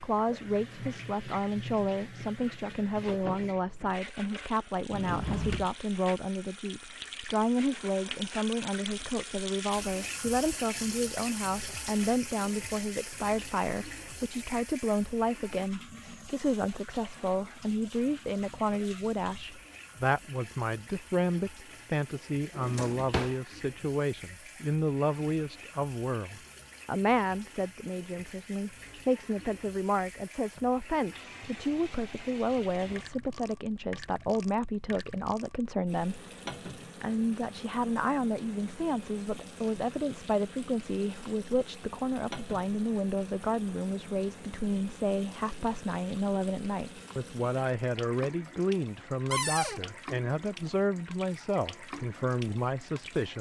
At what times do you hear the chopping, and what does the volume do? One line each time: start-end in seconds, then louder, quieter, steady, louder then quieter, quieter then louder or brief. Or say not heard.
not heard.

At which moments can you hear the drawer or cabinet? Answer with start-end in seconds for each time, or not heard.
4.9-5.7, 22.5-23.4, 49.3-49.8.